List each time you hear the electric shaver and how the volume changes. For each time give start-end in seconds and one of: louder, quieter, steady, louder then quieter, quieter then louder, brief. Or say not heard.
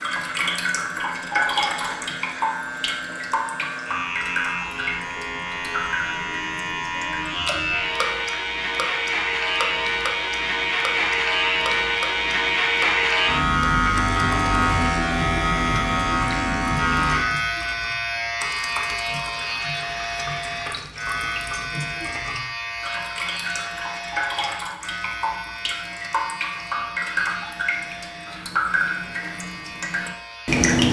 0.0-30.6 louder then quieter.